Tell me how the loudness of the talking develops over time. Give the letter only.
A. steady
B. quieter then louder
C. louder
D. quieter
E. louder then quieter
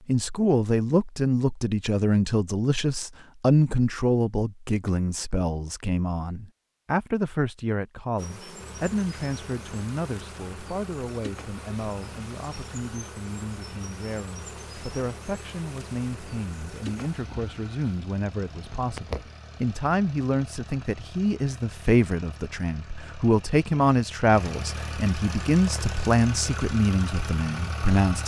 B.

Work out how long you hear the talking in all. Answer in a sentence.
You can hear the talking for 28 seconds altogether.